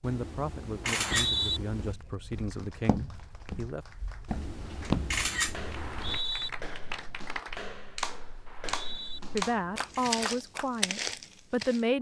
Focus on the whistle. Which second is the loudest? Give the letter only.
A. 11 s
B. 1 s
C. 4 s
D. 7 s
B.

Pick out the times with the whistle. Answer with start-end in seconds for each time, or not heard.
0.8-1.6, 5.8-6.5, 8.4-9.2.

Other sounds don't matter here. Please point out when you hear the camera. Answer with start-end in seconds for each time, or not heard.
0.0-1.9, 4.2-6.2, 9.1-10.2.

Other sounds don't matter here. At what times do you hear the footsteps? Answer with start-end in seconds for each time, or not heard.
1.1-11.8.